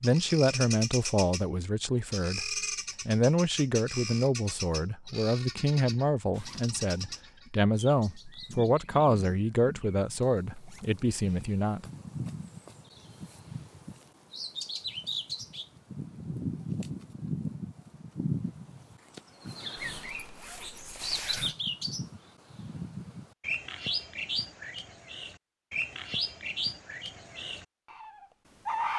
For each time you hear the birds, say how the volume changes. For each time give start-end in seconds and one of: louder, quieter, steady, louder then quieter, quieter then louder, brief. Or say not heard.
0.0-28.9 quieter then louder.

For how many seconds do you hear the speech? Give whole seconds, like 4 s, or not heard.
12 s.